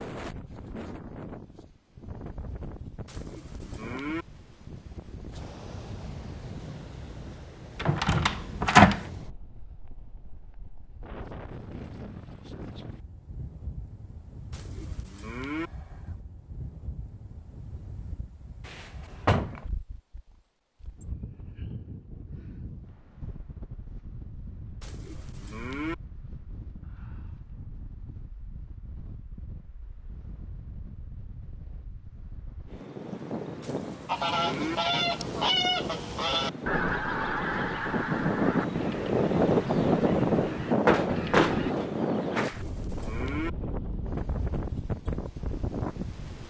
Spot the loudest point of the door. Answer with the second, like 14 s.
9 s.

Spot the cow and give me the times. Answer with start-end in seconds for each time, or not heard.
3.0-4.2, 14.5-15.7, 24.8-25.9, 33.6-34.8, 42.4-43.5.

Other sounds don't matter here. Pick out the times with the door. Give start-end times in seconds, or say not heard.
7.8-9.1, 18.6-19.6, 40.9-42.6.